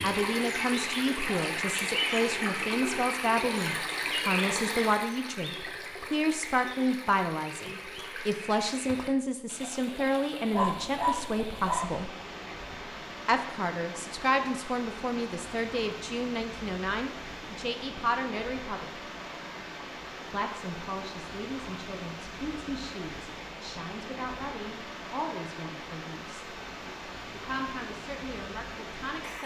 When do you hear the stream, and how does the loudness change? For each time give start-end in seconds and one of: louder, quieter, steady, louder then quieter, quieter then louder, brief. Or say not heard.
0.0-29.4 quieter.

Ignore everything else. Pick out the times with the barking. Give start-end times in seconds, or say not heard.
10.5-12.1.